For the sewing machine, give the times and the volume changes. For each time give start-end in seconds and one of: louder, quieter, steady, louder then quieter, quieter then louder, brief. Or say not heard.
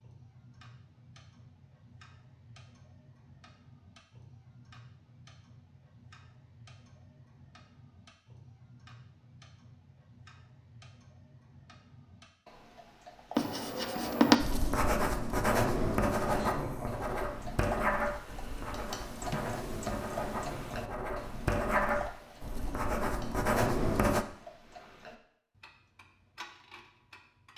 not heard.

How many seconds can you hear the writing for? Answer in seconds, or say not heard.
11 s.